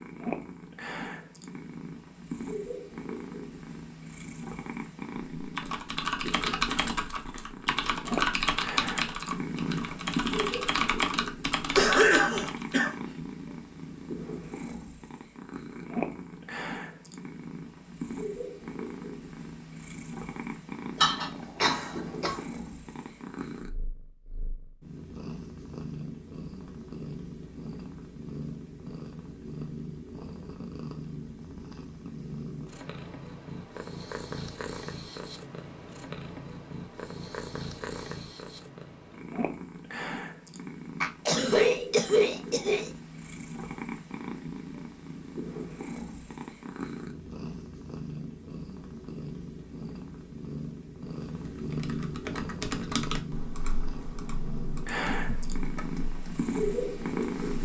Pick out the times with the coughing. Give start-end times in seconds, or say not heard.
11.8-12.9, 21.0-22.4, 41.0-42.9.